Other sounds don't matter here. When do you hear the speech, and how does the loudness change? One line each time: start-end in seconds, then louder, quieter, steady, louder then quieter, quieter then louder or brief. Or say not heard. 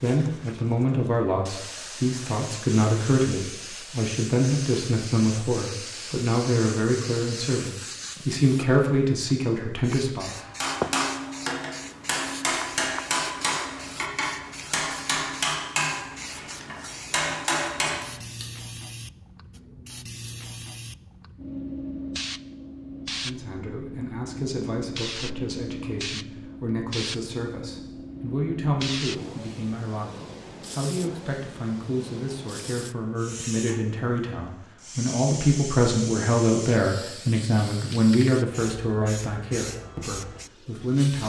0.0-10.3 steady
23.2-41.2 louder.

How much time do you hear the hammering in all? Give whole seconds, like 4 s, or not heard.
8 s.